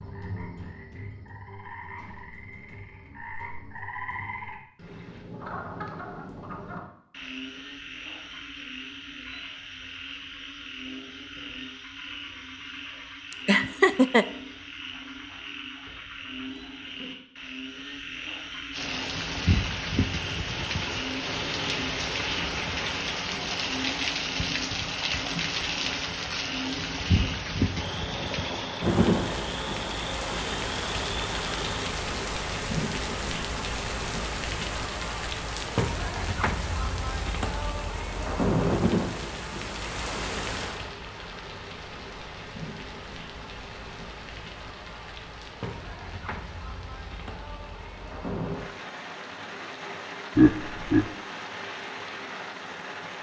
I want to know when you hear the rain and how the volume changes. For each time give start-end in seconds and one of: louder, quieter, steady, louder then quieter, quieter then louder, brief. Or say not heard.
18.7-53.1 quieter.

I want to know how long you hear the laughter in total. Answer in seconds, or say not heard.
2 s.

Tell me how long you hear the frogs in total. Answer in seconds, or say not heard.
32 s.